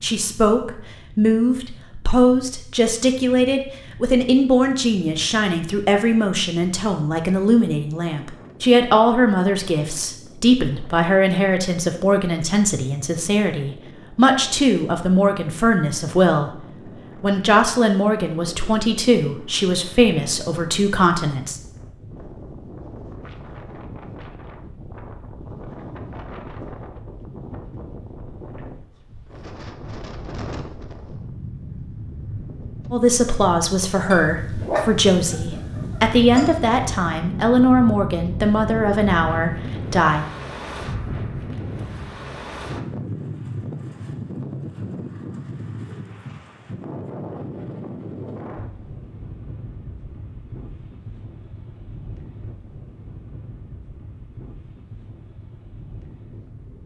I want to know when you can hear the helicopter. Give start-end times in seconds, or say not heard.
not heard.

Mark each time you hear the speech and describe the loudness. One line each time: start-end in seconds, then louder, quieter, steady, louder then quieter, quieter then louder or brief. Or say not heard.
0.0-21.6 steady
32.9-40.2 steady.